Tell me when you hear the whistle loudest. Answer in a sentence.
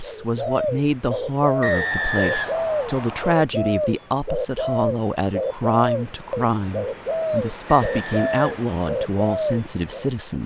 The volume of the whistle peaks at 2 seconds.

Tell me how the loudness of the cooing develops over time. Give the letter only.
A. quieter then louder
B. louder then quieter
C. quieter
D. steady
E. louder
D.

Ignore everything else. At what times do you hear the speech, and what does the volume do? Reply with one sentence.
The speech can be heard from 0.0 to 10.4 s, at a steady volume.